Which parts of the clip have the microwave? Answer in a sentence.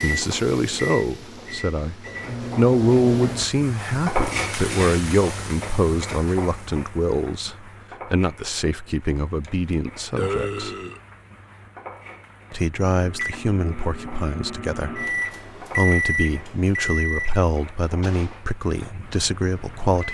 You can hear the microwave from 0.0 to 3.5 s and from 12.9 to 20.0 s.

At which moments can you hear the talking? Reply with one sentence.
You can hear the talking from 0.0 to 10.7 s, from 12.5 to 15.1 s and from 15.8 to 20.0 s.